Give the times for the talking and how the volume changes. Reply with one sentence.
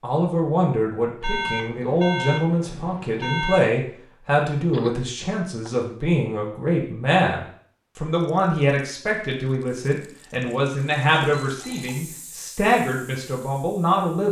The talking can be heard from 0.0 to 14.2 s, at a steady volume.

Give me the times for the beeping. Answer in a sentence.
You can hear the beeping from 1.2 to 3.7 s and from 11.4 to 11.9 s.